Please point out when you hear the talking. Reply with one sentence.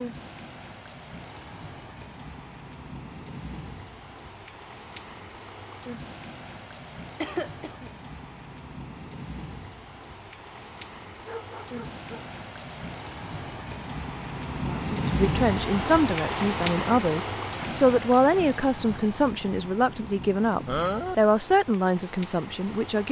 The talking can be heard from 14.7 to 23.0 s.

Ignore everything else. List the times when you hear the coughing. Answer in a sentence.
You can hear the coughing from 7.2 to 7.9 s and from 20.6 to 21.1 s.